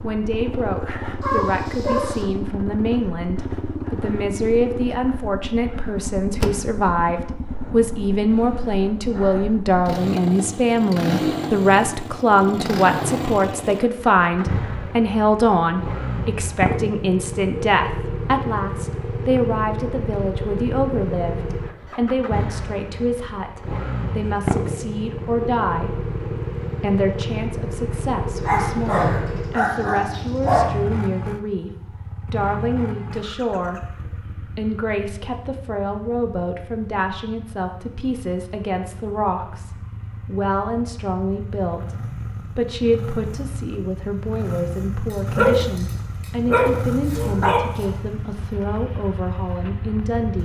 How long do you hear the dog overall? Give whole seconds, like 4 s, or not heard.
6 s.